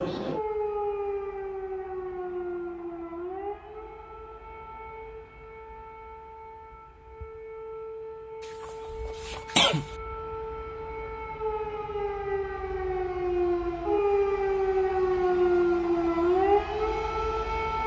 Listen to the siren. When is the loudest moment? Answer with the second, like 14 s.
16 s.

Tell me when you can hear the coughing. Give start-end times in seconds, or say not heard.
8.6-9.9.